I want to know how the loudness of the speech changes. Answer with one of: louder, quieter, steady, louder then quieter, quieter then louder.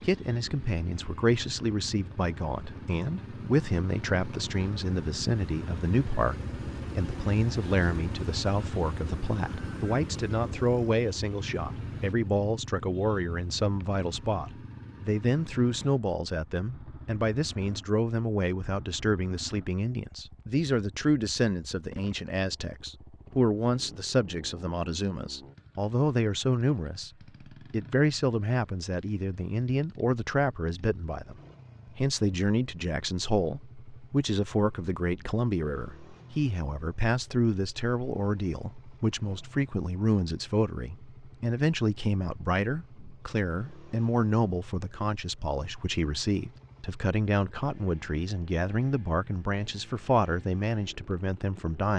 steady.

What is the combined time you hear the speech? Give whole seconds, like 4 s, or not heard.
52 s.